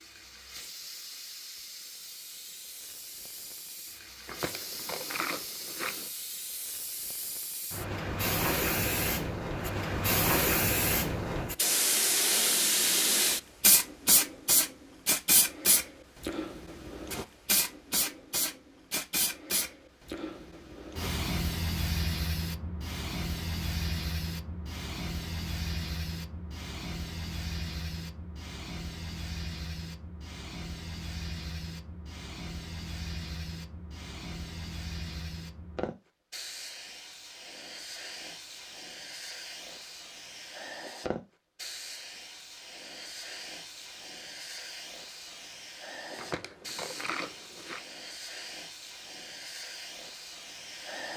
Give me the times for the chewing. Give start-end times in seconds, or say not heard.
4.2-6.1, 46.1-47.8.